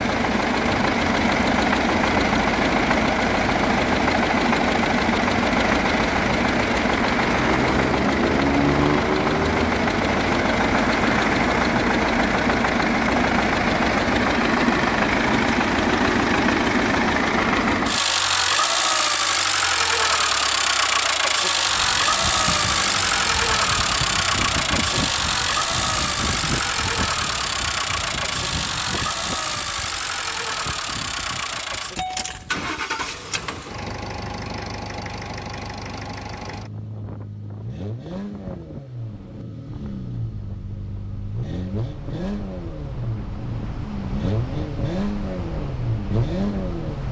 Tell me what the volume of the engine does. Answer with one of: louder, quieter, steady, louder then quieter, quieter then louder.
quieter.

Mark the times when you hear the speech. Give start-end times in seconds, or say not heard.
not heard.